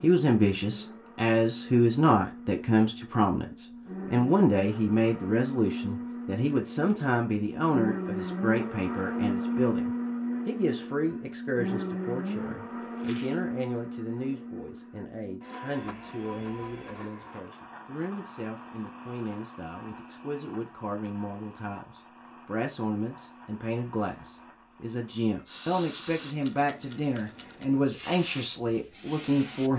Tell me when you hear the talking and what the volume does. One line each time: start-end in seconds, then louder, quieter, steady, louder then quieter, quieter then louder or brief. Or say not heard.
0.0-29.7 quieter then louder.